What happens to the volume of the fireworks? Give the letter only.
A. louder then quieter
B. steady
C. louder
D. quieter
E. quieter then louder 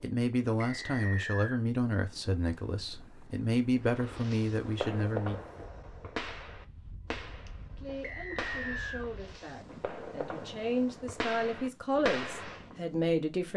E.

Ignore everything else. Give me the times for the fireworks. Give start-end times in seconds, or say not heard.
3.9-12.8.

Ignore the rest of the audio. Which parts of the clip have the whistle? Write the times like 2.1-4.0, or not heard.
0.6-1.6, 8.0-9.1.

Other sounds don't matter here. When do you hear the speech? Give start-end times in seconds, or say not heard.
0.0-5.4, 7.8-13.5.